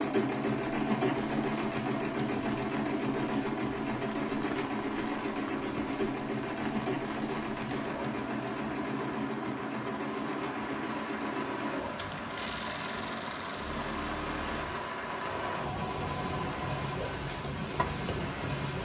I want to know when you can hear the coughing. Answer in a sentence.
The coughing can't be heard in this clip.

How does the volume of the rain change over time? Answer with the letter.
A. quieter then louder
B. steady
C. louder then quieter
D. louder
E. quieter
D.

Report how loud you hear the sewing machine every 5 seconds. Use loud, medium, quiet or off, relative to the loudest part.
loud, loud, medium, medium.